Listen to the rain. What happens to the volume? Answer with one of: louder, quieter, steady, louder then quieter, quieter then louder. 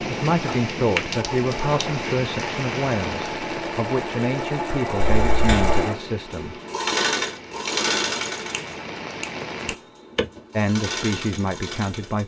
quieter then louder.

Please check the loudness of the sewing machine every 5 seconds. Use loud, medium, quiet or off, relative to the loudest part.
medium, loud, medium.